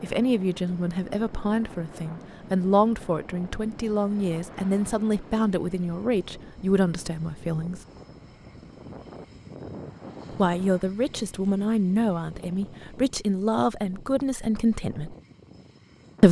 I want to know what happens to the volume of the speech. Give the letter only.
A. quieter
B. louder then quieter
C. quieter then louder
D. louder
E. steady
E.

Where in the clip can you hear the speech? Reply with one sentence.
The speech can be heard from 0.0 to 7.8 s and from 10.3 to 15.2 s.